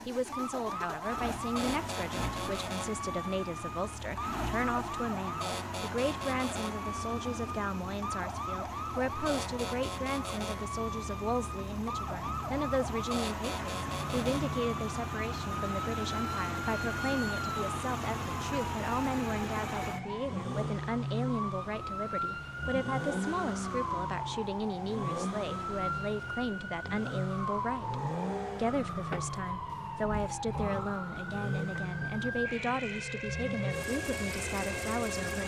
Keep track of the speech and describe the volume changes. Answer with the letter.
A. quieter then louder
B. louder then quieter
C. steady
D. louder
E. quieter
C.